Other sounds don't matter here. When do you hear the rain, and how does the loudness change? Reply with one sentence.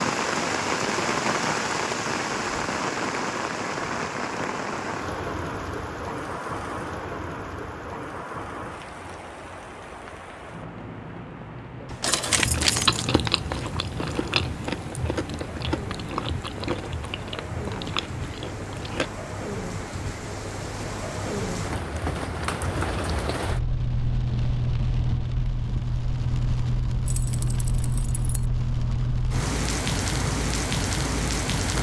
The rain can be heard from 0.0 to 31.7 s, getting quieter then louder.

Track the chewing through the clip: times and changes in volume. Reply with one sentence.
The chewing can be heard from 12.2 to 19.1 s, getting quieter.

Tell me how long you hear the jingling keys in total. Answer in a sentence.
The jingling keys can be heard for 3 seconds in total.